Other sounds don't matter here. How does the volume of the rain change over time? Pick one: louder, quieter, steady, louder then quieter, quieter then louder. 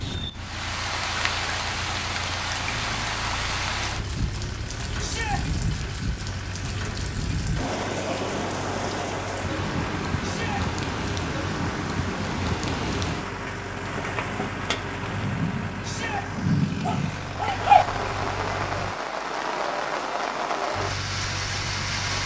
steady.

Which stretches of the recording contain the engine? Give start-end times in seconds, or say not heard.
0.0-18.9, 20.7-22.2.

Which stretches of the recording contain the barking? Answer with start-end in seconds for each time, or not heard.
16.0-17.9.